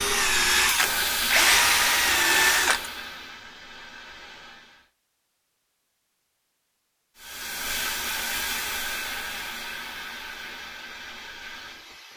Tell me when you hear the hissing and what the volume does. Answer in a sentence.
You can hear the hissing from 0.0 to 4.9 s, getting quieter; and from 7.2 to 12.1 s, getting quieter.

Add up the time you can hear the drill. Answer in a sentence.
You can hear the drill for 3 seconds altogether.